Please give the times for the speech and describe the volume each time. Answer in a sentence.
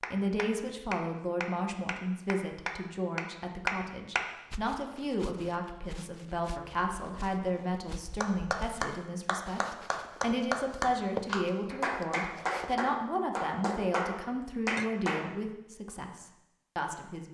The speech can be heard from 0.1 to 17.2 s, at a steady volume.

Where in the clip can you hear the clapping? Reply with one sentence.
You can hear the clapping from 0.0 to 4.2 s and from 8.2 to 15.3 s.